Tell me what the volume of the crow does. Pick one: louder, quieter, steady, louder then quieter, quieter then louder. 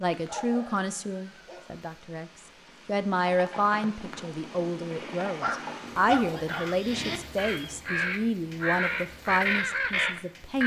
louder.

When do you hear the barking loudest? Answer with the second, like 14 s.
6 s.